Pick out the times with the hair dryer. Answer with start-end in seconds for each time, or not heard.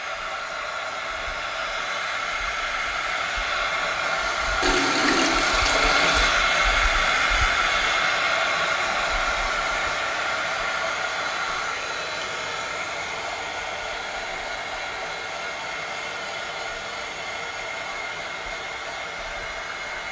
0.0-20.0.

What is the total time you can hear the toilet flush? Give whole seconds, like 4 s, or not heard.
2 s.